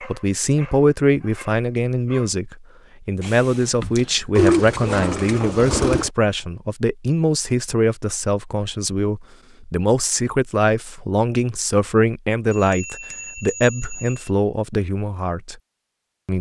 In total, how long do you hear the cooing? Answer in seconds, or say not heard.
2 s.